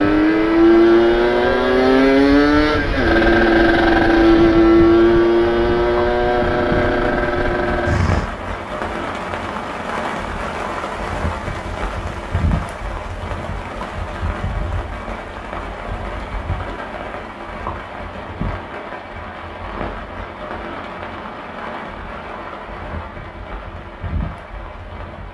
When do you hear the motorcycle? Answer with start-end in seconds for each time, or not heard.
0.0-8.3.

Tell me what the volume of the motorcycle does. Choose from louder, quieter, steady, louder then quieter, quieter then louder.
quieter.